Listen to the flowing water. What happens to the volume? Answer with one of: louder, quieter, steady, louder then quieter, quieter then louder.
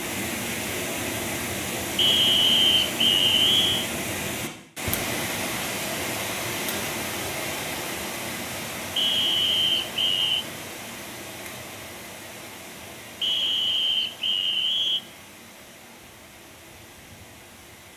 quieter.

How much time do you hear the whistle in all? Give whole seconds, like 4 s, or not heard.
5 s.